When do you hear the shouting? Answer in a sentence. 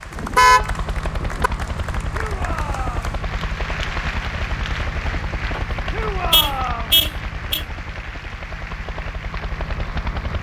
You can hear the shouting from 2.1 to 3.0 s and from 5.9 to 7.0 s.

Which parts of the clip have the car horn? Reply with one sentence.
You can hear the car horn from 0.1 to 1.5 s and from 5.5 to 7.7 s.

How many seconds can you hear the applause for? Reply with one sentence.
The applause can be heard for 10 seconds in total.